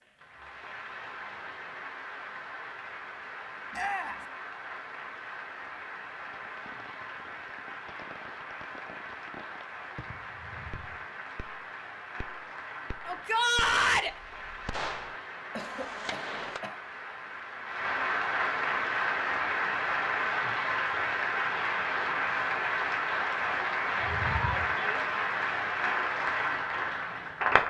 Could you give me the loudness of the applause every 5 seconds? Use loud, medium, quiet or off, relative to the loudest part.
quiet, quiet, quiet, loud, loud, loud.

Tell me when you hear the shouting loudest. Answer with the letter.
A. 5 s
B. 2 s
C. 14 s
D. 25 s
C.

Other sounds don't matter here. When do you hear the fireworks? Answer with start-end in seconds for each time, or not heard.
6.2-16.6.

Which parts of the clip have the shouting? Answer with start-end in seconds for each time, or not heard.
3.7-4.2, 13.1-14.1, 23.9-25.1.